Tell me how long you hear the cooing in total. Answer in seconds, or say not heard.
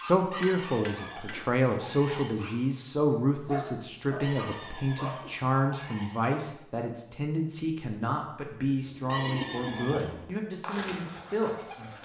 3 s.